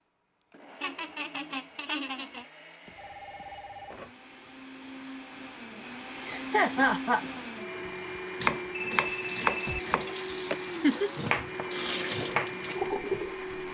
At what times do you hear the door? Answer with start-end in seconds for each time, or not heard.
not heard.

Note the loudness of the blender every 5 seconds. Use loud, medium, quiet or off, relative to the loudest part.
quiet, loud, loud.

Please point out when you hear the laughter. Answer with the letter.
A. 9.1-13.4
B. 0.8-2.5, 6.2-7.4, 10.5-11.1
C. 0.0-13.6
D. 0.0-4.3
B.